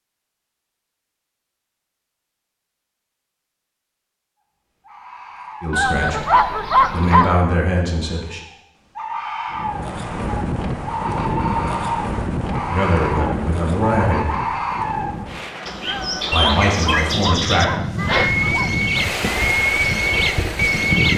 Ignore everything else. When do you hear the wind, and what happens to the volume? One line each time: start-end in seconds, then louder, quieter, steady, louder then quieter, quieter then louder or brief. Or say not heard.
9.5-21.1 quieter then louder.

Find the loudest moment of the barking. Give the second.
7 s.